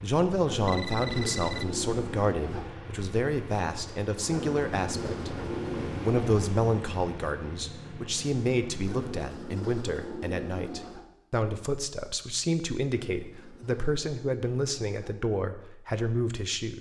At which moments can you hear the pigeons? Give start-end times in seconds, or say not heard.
0.5-2.7, 4.3-6.2, 8.8-11.1, 12.9-15.2.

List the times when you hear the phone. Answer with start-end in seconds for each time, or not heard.
0.7-1.7.